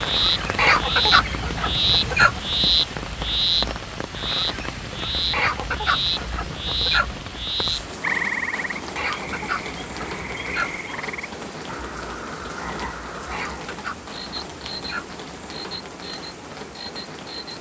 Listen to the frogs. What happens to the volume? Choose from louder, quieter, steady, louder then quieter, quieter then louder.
quieter.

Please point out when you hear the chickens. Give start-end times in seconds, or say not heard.
0.6-2.4, 5.3-7.2, 8.9-10.8, 13.3-15.2.